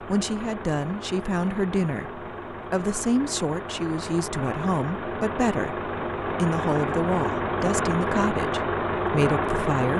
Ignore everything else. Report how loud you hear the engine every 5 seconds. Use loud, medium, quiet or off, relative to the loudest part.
medium, loud.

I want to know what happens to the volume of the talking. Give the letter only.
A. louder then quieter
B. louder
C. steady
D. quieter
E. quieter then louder
C.